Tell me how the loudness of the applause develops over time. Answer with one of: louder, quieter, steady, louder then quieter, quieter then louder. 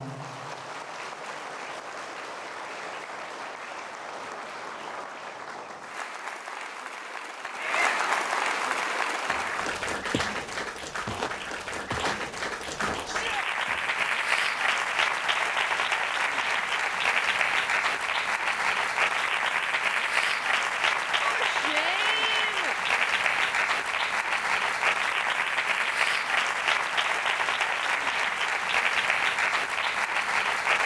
louder.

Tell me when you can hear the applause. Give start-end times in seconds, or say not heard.
0.0-30.8.